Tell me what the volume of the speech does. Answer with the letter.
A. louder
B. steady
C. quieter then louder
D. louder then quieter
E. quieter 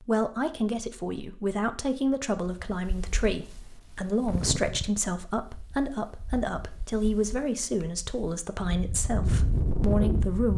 B.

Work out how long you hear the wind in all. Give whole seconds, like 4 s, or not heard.
8 s.